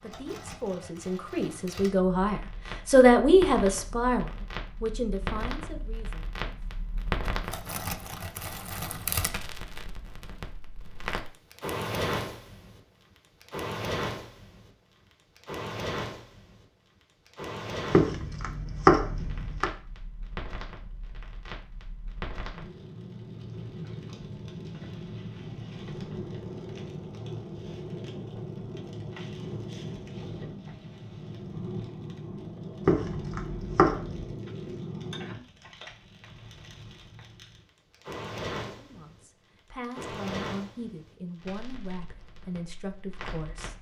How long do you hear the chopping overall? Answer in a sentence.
The chopping can be heard for 3 seconds in total.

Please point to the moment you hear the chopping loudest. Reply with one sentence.
The loudest moment of the chopping is at 19 seconds.